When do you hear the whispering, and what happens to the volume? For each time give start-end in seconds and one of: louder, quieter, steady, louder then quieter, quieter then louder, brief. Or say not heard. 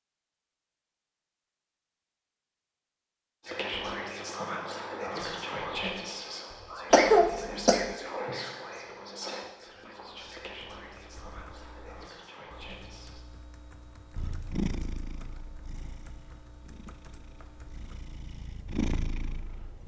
3.4-13.2 quieter.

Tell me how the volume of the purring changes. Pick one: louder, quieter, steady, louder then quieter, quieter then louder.
quieter then louder.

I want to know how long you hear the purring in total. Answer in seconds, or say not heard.
6 s.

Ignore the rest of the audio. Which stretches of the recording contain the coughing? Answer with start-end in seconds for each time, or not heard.
6.9-8.0.